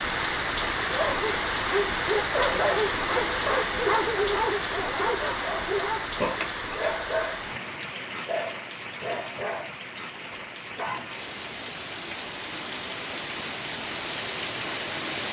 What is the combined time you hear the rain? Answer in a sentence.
You can hear the rain for 15 seconds altogether.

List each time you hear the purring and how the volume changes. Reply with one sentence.
You can't hear the purring here.